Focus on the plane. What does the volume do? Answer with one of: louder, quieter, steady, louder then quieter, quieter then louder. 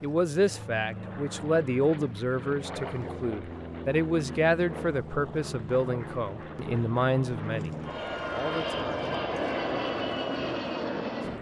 louder.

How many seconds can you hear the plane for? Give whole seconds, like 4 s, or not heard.
11 s.